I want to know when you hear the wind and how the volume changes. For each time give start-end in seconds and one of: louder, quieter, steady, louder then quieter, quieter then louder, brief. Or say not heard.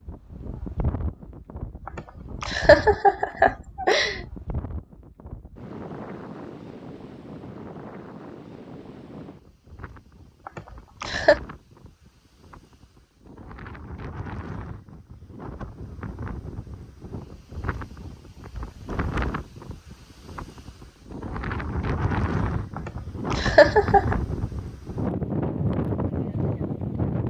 0.0-27.2 louder.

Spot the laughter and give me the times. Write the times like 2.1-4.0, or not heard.
1.9-4.2, 10.4-11.4, 22.8-24.1.